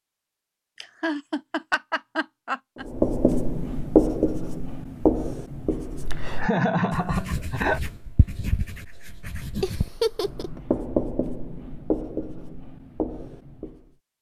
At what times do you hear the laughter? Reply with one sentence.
The laughter can be heard from 0.8 to 2.9 s, from 6.3 to 7.8 s and from 9.6 to 10.6 s.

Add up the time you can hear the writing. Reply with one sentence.
The writing can be heard for 11 seconds in total.